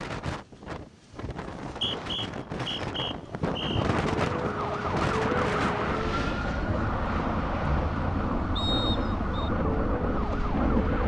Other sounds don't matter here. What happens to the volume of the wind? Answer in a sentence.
The volume of the wind goes up.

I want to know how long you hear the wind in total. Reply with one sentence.
You can hear the wind for 11 seconds altogether.